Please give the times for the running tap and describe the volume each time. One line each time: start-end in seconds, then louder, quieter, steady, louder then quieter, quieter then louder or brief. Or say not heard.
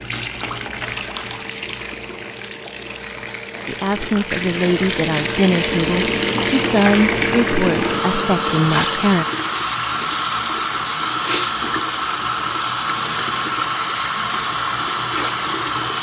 0.0-15.9 louder.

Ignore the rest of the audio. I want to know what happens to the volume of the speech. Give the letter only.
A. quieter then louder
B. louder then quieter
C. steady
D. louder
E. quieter
C.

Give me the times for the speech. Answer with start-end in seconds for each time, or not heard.
3.6-9.2.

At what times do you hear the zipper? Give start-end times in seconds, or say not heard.
not heard.